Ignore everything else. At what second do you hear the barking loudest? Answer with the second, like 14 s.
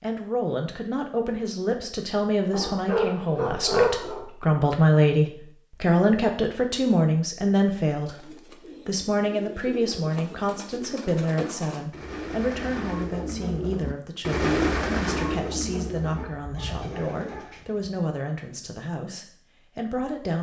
4 s.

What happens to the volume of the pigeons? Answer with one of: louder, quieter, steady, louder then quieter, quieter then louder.
louder then quieter.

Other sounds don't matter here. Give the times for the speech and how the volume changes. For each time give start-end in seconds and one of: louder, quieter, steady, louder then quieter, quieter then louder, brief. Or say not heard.
0.0-20.3 louder then quieter.